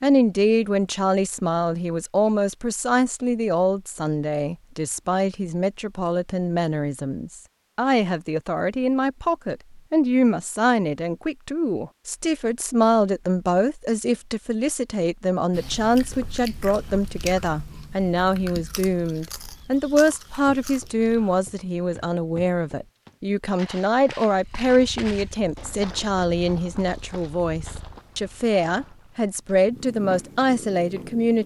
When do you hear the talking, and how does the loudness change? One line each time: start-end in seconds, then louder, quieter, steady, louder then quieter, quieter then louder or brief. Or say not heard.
0.0-31.4 steady.